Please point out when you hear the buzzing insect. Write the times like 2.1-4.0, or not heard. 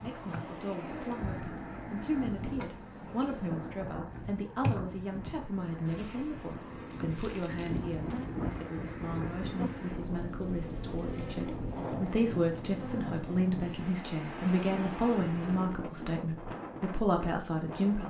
0.0-13.2.